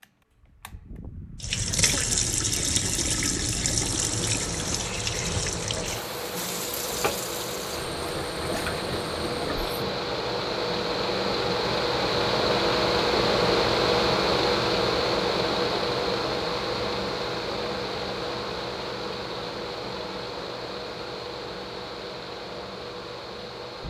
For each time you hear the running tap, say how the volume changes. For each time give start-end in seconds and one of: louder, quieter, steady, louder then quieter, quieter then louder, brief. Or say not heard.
1.4-10.0 quieter.